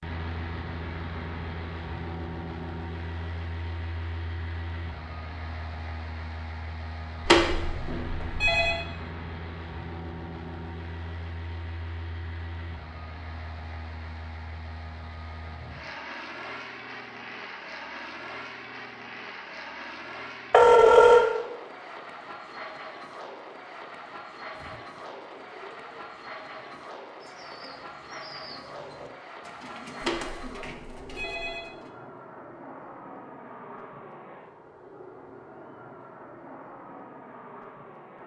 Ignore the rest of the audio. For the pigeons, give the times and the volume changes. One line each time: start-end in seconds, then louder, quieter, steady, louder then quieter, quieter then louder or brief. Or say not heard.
24.5-31.9 louder.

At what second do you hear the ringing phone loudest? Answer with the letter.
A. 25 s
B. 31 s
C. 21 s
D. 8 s
C.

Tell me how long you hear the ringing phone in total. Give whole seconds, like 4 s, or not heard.
4 s.